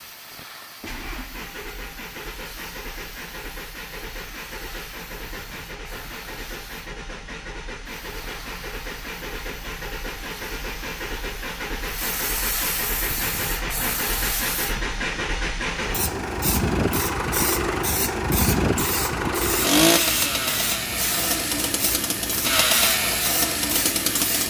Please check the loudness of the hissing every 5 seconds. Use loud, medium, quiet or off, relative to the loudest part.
quiet, quiet, loud, loud, loud.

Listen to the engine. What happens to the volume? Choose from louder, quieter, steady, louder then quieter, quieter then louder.
louder.